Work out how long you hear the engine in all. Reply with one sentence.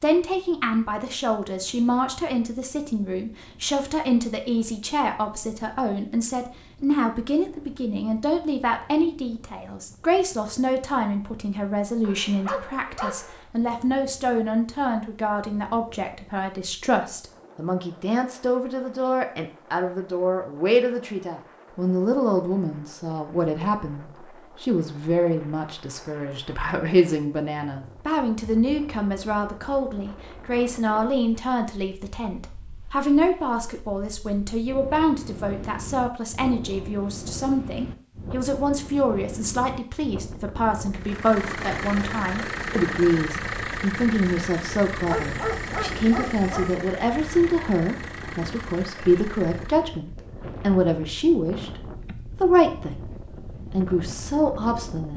The engine can be heard for 9 seconds in total.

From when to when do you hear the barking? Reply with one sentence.
You can hear the barking from 12.0 to 13.4 s and from 45.0 to 46.8 s.